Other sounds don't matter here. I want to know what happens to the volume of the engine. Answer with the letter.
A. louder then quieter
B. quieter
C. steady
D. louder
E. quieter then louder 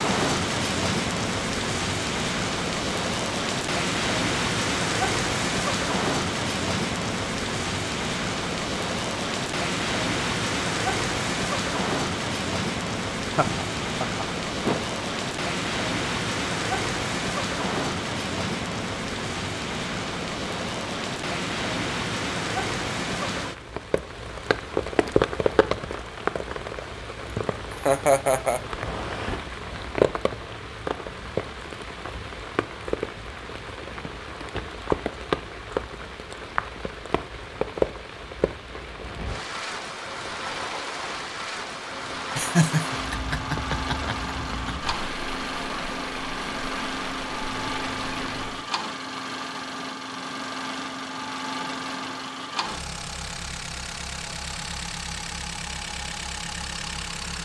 C.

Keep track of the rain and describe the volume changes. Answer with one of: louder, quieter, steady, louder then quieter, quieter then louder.
quieter.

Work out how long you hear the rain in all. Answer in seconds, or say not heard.
49 s.